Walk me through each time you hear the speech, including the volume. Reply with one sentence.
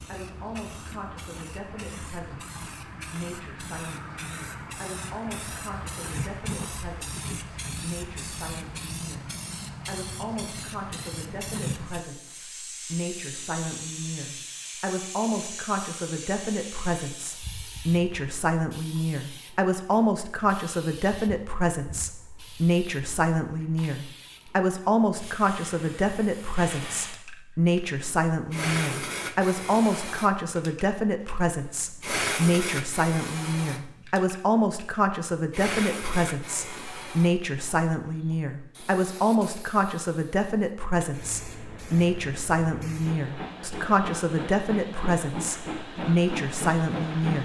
The speech can be heard from 0.1 to 47.4 s, getting louder.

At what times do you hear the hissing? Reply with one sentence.
You can hear the hissing from 0.0 to 47.4 s.